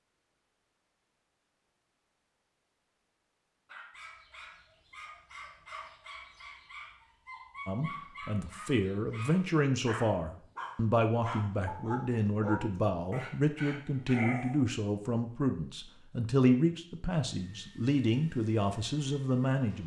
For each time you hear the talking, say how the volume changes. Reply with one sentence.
You can hear the talking from 7.7 to 19.8 s, at a steady volume.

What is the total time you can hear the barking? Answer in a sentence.
The barking can be heard for 11 seconds in total.